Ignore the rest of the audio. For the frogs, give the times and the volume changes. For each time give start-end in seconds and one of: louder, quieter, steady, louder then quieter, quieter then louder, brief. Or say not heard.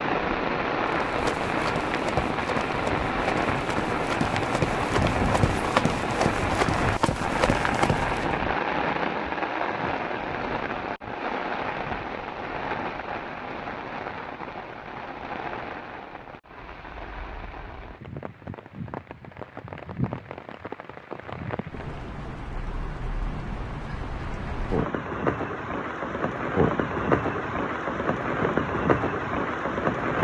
not heard.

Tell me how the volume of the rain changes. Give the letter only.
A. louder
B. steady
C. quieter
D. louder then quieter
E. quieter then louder
E.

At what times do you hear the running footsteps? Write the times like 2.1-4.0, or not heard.
0.8-8.3.